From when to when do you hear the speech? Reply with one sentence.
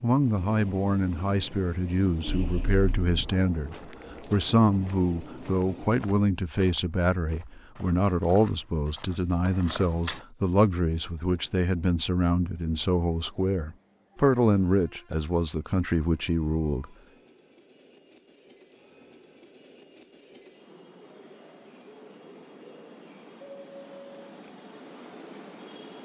The speech can be heard from 0.0 to 16.9 s.